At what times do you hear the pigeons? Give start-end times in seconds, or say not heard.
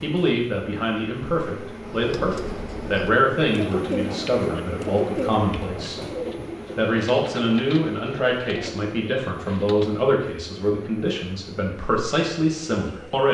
1.8-10.1.